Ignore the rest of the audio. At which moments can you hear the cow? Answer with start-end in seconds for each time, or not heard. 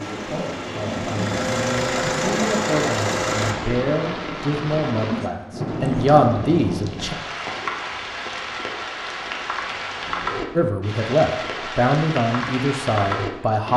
not heard.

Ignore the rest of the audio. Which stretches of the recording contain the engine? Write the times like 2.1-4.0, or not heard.
0.0-3.5.